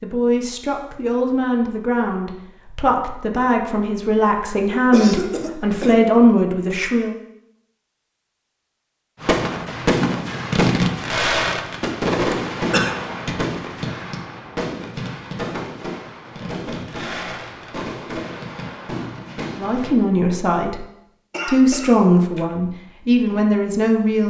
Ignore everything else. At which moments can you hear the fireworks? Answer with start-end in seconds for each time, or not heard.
9.2-19.9.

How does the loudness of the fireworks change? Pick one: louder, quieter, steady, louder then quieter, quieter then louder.
quieter.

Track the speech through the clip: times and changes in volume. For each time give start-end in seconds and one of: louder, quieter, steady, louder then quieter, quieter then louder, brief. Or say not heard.
0.0-7.2 louder
19.6-20.9 brief
21.4-24.2 brief.